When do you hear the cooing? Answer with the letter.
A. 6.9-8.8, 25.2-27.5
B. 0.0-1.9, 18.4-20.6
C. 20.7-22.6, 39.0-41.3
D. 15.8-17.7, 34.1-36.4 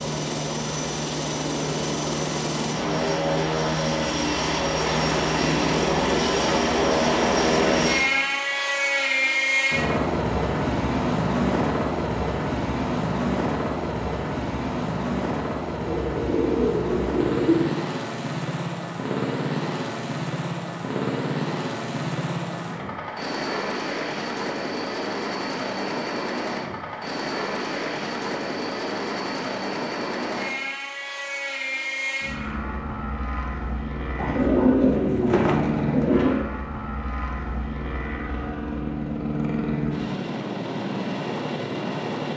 D.